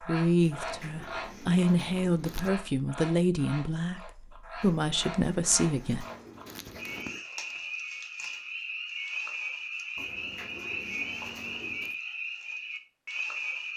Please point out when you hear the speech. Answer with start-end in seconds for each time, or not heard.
0.0-6.0.